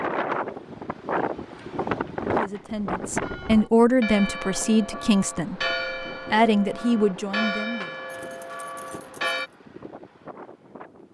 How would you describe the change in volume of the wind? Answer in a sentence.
The loudness of the wind goes down.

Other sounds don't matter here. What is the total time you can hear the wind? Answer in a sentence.
The wind can be heard for 11 seconds in total.